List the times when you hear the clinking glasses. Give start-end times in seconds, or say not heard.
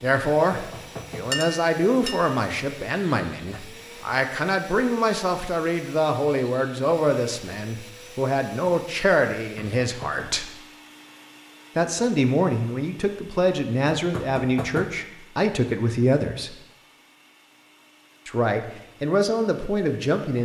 1.3-2.3.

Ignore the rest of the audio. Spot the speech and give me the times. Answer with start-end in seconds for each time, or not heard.
0.0-10.6, 11.8-16.6, 18.2-20.4.